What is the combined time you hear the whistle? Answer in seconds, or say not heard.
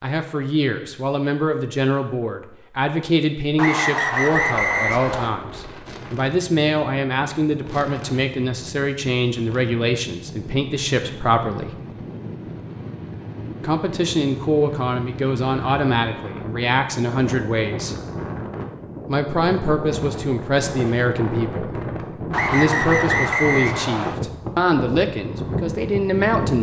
4 s.